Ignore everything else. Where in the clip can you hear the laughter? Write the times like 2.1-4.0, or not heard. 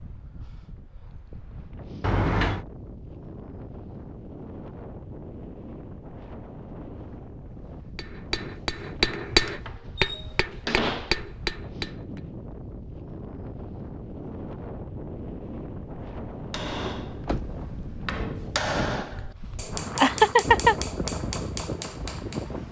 19.9-20.8.